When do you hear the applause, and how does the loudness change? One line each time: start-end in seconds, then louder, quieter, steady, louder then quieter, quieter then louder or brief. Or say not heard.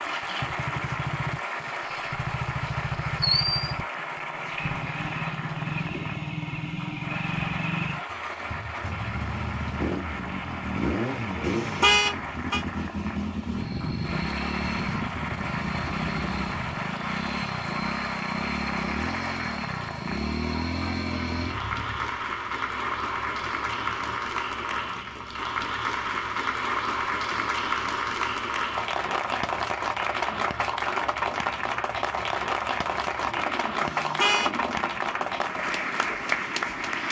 0.0-37.0 louder.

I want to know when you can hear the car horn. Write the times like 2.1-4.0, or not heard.
11.4-12.6, 33.8-34.5.